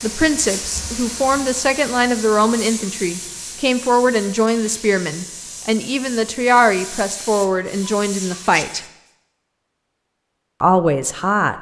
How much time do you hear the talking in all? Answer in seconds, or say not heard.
10 s.